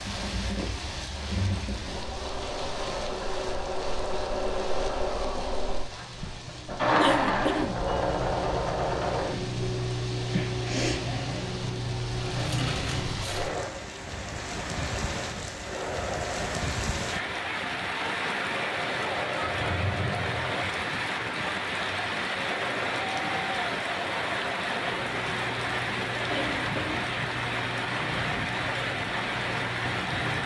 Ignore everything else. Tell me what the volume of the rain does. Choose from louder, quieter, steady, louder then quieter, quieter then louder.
louder.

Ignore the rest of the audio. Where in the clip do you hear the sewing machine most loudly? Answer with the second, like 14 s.
7 s.